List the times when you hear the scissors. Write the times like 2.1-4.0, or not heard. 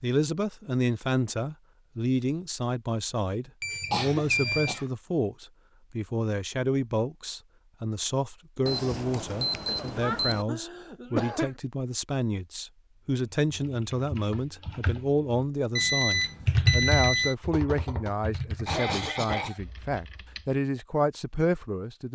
not heard.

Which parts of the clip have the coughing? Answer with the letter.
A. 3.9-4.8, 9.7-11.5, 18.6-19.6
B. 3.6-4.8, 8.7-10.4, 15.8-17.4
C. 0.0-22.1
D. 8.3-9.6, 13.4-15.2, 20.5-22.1
A.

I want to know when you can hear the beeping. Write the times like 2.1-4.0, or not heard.
3.6-4.8, 8.7-10.4, 15.8-17.4.